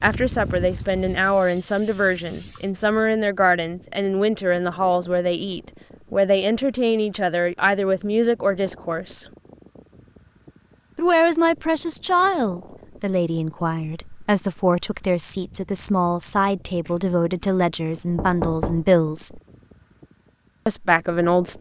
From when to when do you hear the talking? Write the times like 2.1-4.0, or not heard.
0.0-9.2, 10.9-19.4, 20.6-21.5.